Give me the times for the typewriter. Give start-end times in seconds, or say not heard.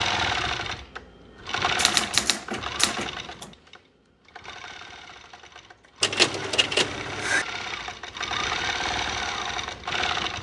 1.8-3.5, 6.0-7.5.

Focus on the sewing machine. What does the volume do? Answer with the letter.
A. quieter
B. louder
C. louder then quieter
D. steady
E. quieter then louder
E.